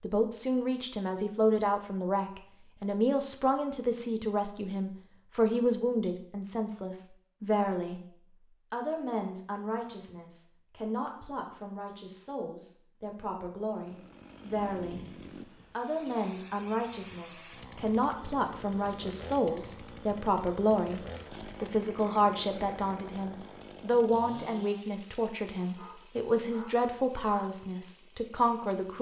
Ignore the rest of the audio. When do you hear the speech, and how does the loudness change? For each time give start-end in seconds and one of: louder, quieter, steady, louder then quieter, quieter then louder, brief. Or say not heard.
0.0-15.0 quieter
15.7-28.9 steady.